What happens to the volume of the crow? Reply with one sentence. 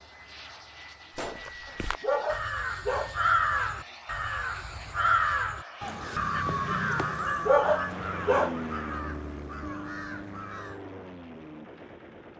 The volume of the crow goes down.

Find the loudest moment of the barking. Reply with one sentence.
The loudest moment of the barking is at 8 seconds.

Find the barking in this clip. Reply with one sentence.
The barking can be heard from 1.6 to 3.1 s and from 7.1 to 8.6 s.